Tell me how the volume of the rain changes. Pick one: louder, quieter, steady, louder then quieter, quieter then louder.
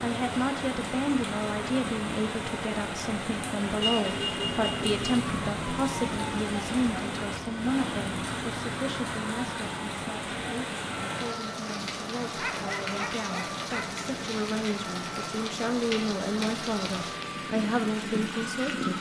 steady.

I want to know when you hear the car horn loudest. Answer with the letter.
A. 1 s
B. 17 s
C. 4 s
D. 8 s
C.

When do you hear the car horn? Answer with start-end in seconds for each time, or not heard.
3.8-5.2.